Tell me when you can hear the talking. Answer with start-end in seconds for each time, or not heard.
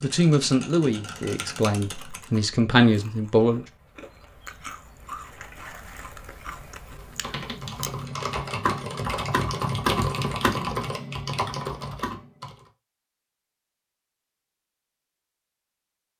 0.0-3.6.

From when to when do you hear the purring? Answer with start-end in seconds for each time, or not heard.
not heard.